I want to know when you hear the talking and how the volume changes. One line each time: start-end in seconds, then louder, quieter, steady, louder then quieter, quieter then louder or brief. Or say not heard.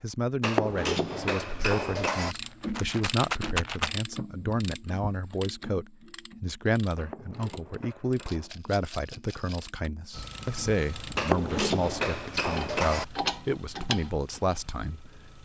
0.0-15.4 steady.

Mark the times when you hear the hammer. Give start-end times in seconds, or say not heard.
0.4-2.4, 7.0-8.5, 11.2-13.1.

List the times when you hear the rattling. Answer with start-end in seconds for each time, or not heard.
2.2-3.9, 8.2-9.7.